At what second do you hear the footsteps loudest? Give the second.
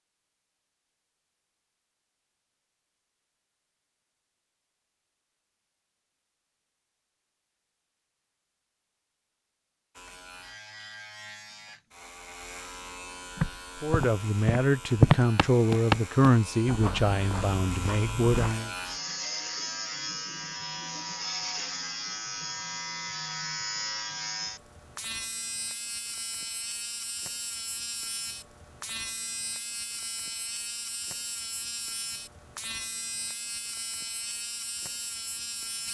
15 s.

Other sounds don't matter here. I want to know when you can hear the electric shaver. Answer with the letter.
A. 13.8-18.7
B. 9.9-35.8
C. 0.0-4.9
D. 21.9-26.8
B.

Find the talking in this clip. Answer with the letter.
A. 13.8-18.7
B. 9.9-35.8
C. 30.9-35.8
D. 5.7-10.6
A.